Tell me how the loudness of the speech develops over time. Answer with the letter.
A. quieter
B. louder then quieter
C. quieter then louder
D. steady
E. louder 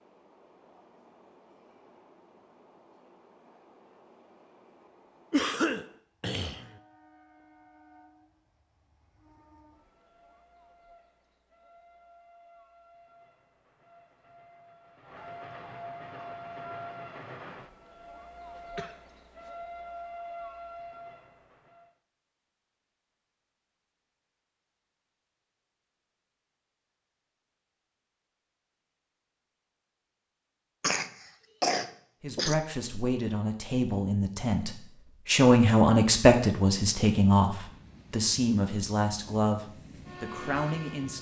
B.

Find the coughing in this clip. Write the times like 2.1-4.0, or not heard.
5.3-6.8, 18.8-19.5, 30.8-32.5.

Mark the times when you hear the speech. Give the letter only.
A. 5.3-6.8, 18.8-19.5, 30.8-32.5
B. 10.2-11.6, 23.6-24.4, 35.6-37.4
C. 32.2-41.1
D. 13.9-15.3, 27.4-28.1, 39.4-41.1
C.